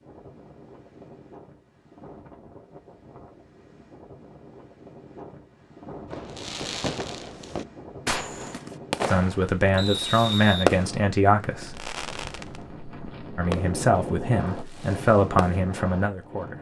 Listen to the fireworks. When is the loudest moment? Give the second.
11 s.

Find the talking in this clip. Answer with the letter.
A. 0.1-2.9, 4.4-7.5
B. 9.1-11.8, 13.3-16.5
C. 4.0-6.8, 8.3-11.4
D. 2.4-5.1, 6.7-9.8
B.